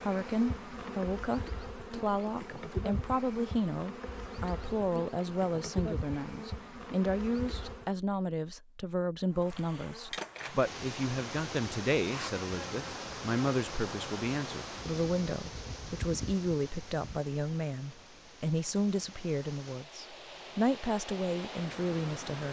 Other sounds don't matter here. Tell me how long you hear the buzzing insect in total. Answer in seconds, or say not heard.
16 s.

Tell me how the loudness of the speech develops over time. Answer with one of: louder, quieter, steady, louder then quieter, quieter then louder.
steady.